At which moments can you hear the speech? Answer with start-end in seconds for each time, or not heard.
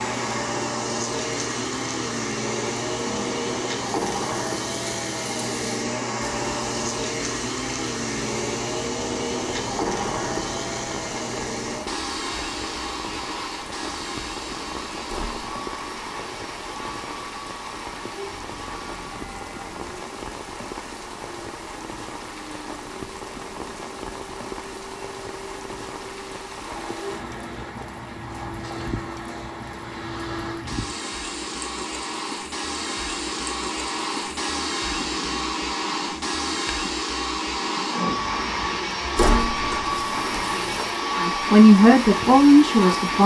41.2-43.2.